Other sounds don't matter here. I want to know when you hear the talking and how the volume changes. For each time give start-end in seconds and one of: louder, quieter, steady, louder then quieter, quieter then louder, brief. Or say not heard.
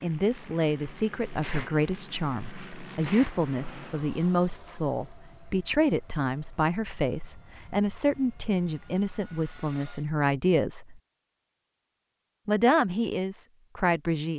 0.0-11.0 steady
12.4-14.3 brief.